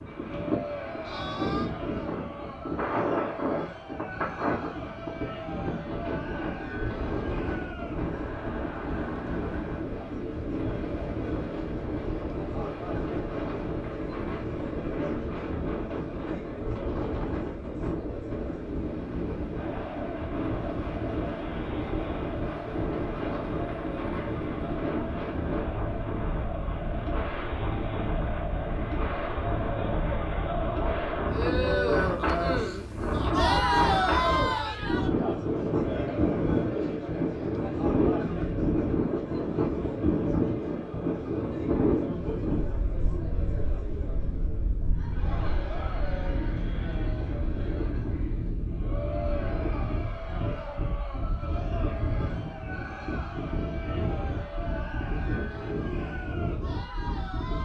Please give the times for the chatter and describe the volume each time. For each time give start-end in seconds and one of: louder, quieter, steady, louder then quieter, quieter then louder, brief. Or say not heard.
0.2-57.5 louder then quieter.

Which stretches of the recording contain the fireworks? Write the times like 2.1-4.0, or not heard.
not heard.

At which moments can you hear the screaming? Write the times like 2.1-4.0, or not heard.
1.0-1.7.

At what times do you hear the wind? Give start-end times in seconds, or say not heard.
0.0-57.5.